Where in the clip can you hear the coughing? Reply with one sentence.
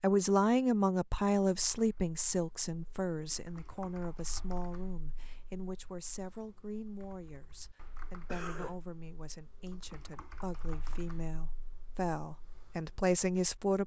You can hear the coughing from 8.2 to 8.8 s.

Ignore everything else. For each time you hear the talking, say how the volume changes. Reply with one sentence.
The talking can be heard from 0.0 to 13.8 s, getting quieter then louder.